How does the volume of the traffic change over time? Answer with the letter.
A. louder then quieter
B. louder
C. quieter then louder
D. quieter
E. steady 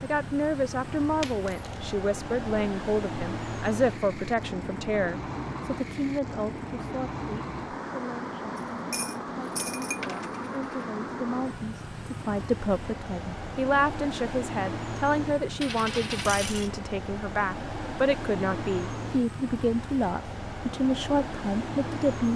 E.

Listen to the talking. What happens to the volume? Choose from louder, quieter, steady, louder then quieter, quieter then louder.
steady.